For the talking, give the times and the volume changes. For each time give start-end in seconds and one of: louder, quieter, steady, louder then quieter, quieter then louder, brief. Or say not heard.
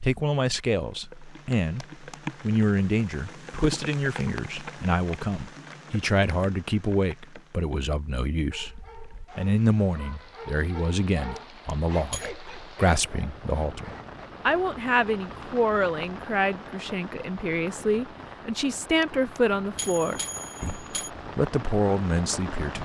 0.0-22.8 steady.